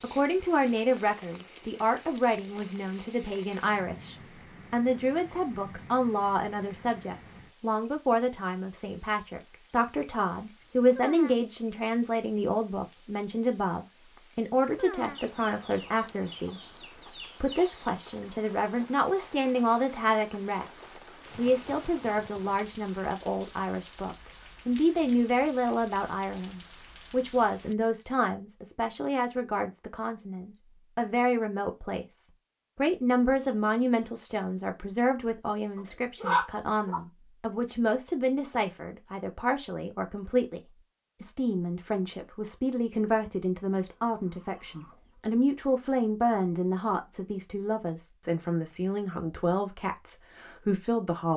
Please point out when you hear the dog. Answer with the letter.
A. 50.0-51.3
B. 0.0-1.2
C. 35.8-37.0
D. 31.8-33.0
C.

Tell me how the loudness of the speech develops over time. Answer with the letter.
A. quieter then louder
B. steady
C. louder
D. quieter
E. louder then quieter
B.